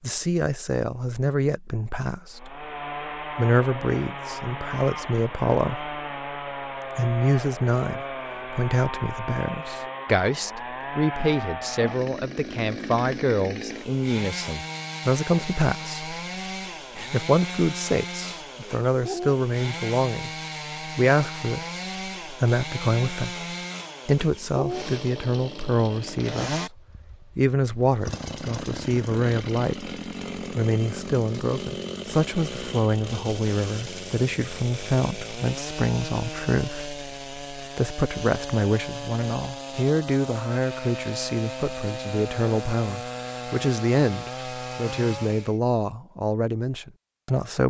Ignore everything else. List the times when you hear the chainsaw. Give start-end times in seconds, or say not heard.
2.3-45.6.